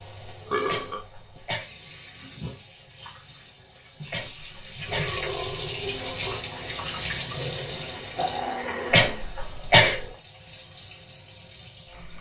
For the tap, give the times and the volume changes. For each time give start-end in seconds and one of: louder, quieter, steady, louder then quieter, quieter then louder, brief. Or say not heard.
0.0-12.1 louder then quieter.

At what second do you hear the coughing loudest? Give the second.
10 s.